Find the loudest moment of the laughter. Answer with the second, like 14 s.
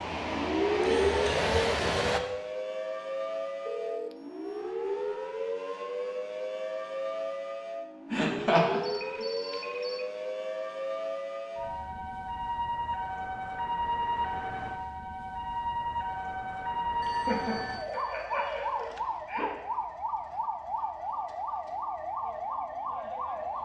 9 s.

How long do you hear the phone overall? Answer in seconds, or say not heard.
4 s.